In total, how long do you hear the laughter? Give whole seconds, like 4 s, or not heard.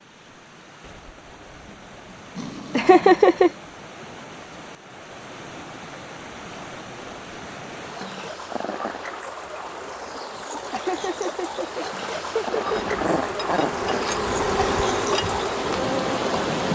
3 s.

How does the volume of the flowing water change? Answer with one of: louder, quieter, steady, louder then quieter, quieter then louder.
louder.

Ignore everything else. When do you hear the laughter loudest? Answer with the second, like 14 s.
3 s.